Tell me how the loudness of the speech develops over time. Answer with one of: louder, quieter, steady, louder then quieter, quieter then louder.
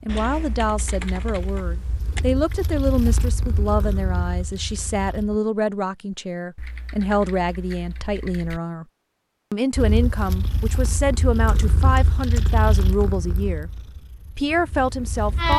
steady.